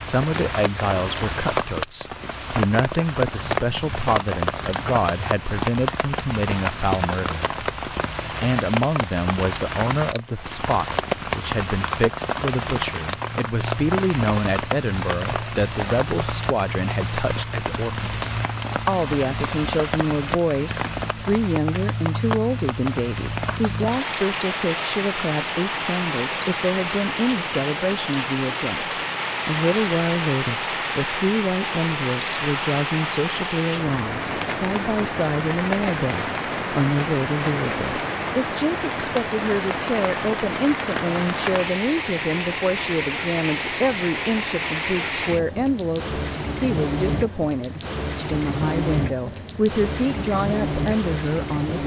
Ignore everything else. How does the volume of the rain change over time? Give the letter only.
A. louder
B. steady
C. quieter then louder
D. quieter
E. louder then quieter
B.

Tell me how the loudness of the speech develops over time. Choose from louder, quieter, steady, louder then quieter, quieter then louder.
steady.